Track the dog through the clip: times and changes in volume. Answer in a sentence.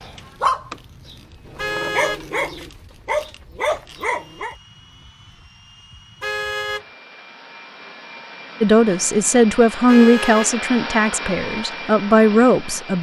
You can hear the dog from 0.0 to 4.5 s, getting quieter then louder.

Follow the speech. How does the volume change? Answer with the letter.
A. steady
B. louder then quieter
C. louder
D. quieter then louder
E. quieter
D.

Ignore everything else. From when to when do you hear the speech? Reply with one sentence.
You can hear the speech from 8.6 to 12.9 s.